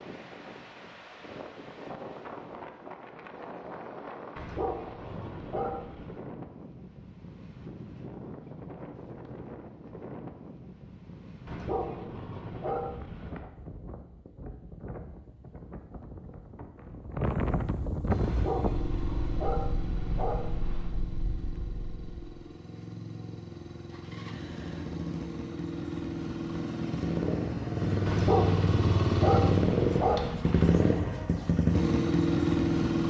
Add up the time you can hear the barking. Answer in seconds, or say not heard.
9 s.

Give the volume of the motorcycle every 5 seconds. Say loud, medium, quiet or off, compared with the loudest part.
off, off, off, medium, quiet, loud, loud.